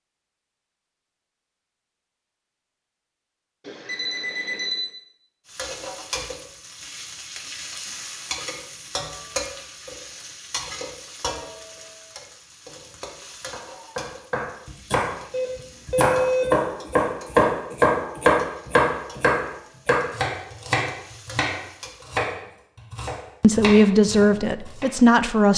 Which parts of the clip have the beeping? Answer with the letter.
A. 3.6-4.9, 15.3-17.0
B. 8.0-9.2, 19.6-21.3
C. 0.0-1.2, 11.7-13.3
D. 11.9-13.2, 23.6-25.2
A.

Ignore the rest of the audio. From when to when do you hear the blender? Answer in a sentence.
You can't hear the blender here.